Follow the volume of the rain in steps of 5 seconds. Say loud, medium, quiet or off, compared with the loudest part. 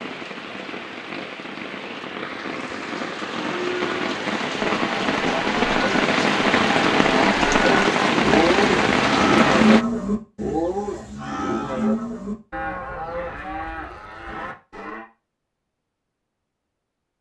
medium, loud, off, off.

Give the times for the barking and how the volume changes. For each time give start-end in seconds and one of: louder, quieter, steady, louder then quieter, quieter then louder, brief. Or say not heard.
not heard.